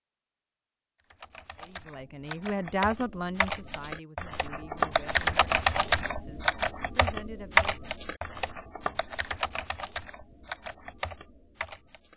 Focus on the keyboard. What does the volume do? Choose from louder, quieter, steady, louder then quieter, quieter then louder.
louder then quieter.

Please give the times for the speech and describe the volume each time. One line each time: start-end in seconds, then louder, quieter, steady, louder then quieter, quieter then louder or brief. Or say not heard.
1.6-8.0 quieter then louder.